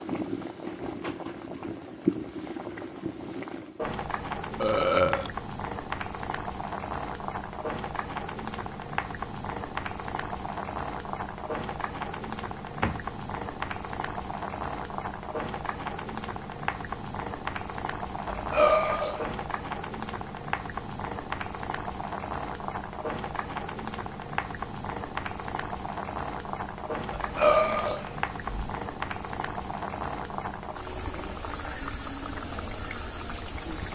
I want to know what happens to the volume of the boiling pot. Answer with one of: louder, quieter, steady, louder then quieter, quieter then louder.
steady.